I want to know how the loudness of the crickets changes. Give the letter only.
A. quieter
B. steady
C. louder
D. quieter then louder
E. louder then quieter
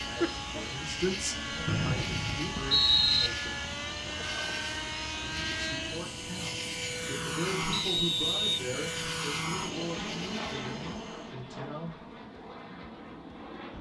B.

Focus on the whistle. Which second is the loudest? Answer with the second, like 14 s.
3 s.